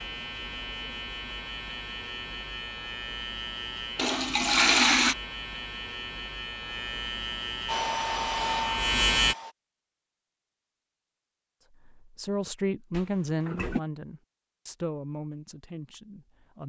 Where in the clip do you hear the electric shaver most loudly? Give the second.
9 s.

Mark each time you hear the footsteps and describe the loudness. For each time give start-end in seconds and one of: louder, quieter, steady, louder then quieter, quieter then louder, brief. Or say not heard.
not heard.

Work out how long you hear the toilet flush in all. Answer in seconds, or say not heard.
2 s.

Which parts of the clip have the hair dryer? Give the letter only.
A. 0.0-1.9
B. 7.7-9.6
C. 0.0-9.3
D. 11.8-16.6
B.